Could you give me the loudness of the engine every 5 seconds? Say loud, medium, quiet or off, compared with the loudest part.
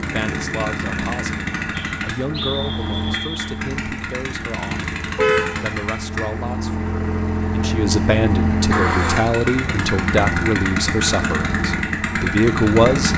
medium, loud, loud.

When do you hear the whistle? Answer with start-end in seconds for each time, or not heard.
1.7-3.5.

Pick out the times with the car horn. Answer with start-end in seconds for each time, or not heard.
5.2-5.8.